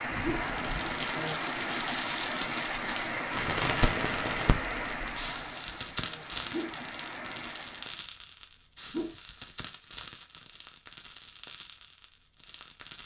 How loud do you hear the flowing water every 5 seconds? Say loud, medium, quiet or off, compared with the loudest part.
loud, medium, off.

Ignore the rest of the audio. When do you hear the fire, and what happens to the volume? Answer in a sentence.
The fire can be heard from 0.0 to 13.0 s, getting quieter.